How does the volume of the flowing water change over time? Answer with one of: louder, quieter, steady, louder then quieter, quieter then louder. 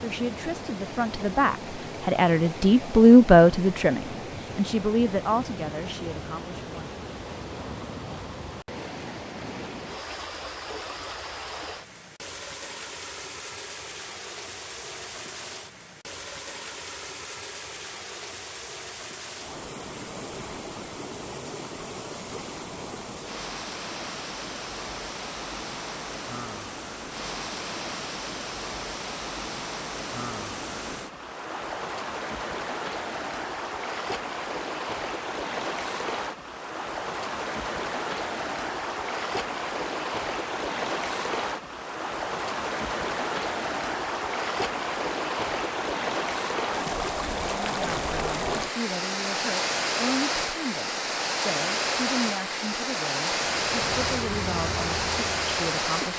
louder.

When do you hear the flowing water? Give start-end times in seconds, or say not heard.
0.0-56.1.